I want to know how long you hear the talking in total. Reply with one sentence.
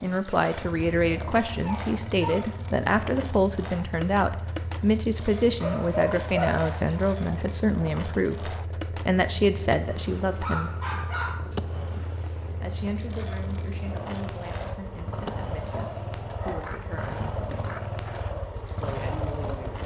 The talking can be heard for 17 seconds in total.